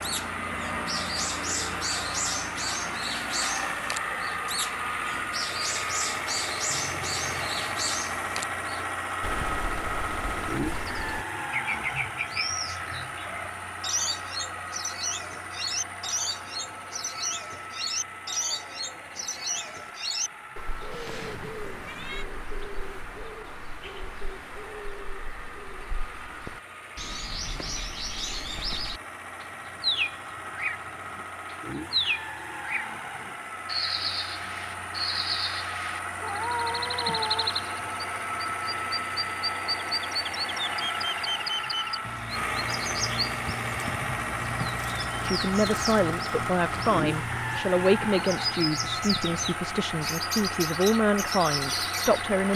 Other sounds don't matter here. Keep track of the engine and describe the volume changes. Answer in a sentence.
The loudness of the engine goes down, then up.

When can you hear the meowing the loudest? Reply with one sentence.
The loudest moment of the meowing is at 37 seconds.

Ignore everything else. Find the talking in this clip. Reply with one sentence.
The talking can be heard from 45.2 to 52.5 s.